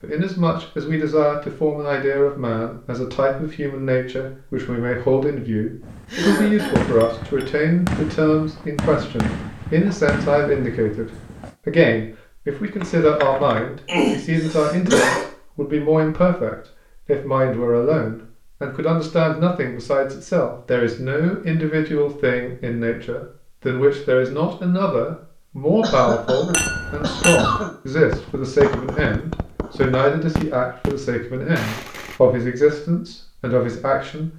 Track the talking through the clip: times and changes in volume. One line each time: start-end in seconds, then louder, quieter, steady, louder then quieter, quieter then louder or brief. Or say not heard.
0.0-34.3 steady.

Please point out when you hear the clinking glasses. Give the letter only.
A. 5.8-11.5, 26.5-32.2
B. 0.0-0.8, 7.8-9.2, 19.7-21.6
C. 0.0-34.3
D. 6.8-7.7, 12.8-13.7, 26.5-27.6
D.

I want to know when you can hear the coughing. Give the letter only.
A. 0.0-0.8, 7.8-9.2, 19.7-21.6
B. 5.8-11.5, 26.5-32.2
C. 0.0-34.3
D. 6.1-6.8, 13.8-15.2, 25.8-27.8
D.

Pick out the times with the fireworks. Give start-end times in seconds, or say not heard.
5.8-11.5, 26.5-32.2.